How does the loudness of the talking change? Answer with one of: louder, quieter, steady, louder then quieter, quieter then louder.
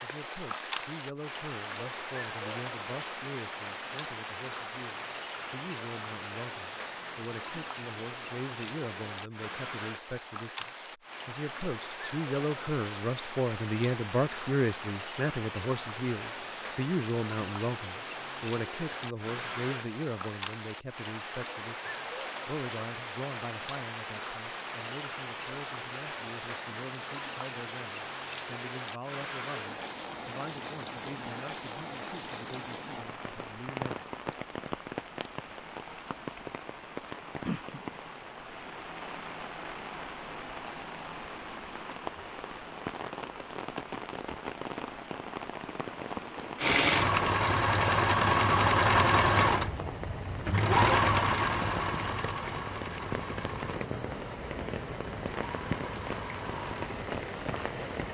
louder then quieter.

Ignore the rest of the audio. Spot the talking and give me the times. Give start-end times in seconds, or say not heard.
0.0-34.1.